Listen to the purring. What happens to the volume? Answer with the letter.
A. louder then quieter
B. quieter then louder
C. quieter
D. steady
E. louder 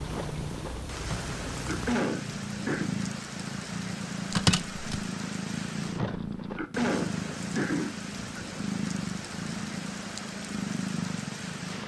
D.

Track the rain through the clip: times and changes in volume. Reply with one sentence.
You can hear the rain from 0.0 to 11.8 s, at a steady volume.